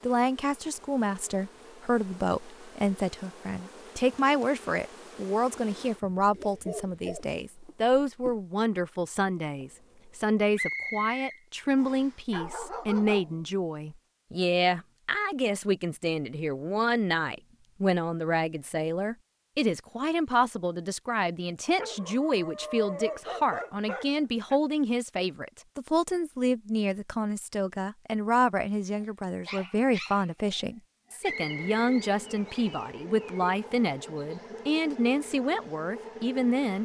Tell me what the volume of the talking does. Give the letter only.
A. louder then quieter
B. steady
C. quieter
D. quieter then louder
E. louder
B.